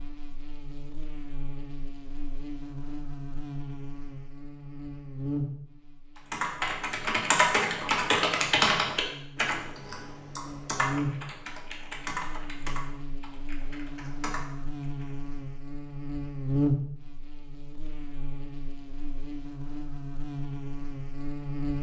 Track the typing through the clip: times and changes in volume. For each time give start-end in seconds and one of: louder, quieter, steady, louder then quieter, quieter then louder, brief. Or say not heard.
6.3-15.2 quieter.